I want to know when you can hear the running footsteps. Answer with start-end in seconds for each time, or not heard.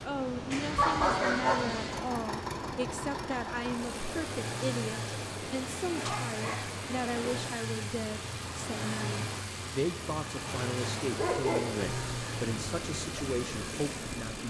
not heard.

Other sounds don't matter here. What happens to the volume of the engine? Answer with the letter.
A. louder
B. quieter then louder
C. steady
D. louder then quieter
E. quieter
C.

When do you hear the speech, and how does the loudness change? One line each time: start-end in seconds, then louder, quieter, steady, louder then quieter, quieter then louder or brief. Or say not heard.
0.0-14.4 steady.